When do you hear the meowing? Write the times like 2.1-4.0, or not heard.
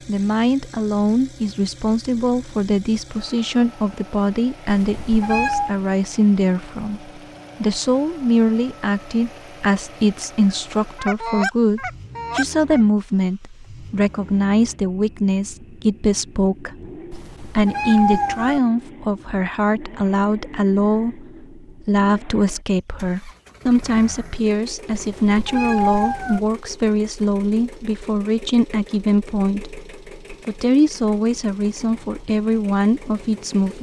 4.7-5.8, 17.1-18.6, 24.9-26.4.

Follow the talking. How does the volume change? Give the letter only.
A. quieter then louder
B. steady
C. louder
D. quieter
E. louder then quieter
B.